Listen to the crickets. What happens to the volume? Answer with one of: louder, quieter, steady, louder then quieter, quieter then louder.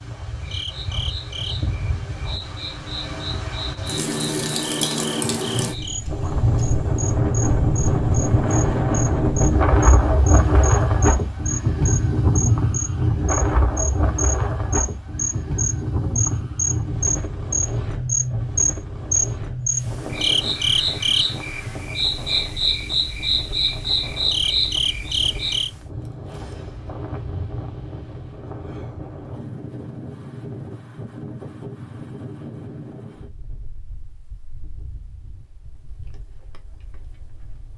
louder.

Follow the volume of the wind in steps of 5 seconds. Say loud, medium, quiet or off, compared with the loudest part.
medium, loud, loud, medium, quiet, quiet, quiet, quiet.